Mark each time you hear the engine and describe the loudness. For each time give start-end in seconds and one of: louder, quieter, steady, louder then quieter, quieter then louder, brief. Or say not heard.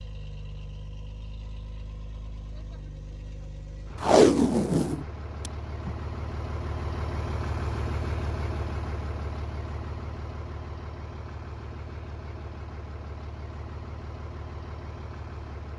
0.0-15.7 louder then quieter.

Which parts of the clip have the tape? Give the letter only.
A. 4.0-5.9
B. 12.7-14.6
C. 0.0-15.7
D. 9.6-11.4
A.